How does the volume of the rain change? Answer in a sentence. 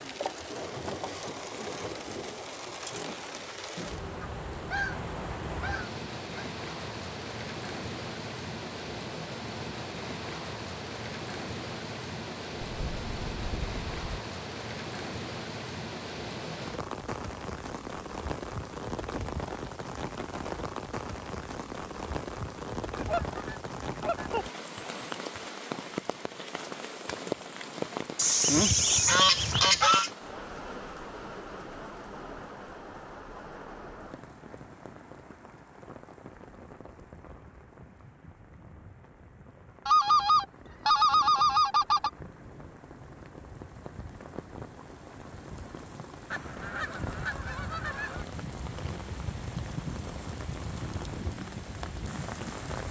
The volume of the rain goes down, then up.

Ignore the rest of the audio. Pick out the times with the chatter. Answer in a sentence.
The chatter can't be heard in this clip.